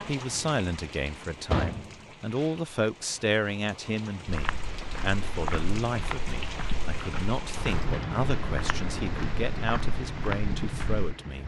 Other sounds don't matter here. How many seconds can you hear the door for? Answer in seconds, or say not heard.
3 s.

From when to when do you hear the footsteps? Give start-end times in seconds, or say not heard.
4.2-11.2.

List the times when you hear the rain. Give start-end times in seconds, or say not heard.
0.0-11.4.